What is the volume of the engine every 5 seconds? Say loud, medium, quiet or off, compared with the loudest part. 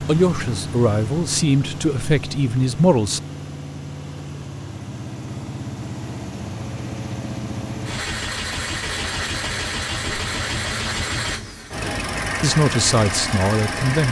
medium, loud, loud.